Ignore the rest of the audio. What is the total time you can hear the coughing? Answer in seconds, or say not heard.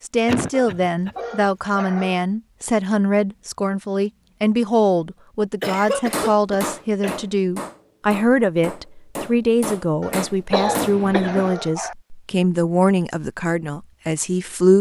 4 s.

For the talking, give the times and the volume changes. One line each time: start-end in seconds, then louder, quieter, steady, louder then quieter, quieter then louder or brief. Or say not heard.
0.0-14.7 steady.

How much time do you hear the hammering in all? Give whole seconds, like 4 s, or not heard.
5 s.